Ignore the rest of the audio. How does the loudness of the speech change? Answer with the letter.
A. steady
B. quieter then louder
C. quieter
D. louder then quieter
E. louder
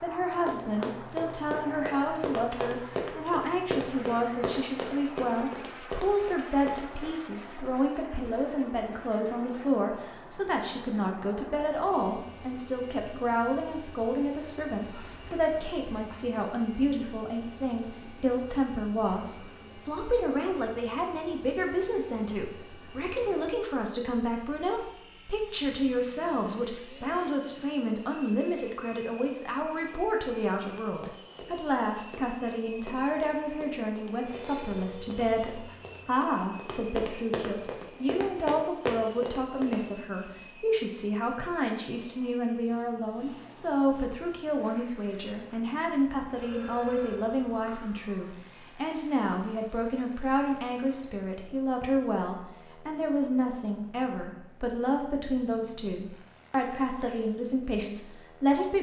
A.